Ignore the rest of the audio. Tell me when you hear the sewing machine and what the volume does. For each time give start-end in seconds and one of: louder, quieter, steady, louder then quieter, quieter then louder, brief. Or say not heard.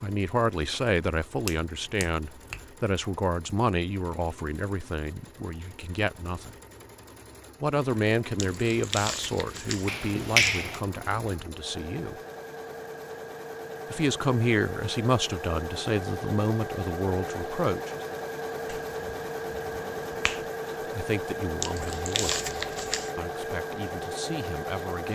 0.0-25.0 louder.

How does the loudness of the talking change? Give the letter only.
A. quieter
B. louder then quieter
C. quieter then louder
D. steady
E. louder
A.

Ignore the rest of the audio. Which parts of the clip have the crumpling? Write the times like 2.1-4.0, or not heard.
8.3-10.7, 21.6-23.1.